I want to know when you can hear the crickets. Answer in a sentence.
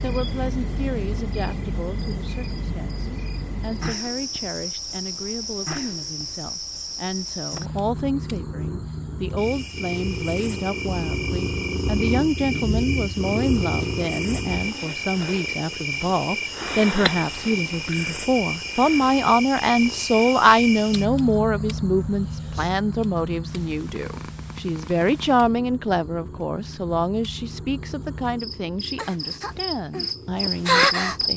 You can hear the crickets from 0.0 to 31.3 s.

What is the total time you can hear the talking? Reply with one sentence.
The talking can be heard for 31 seconds in total.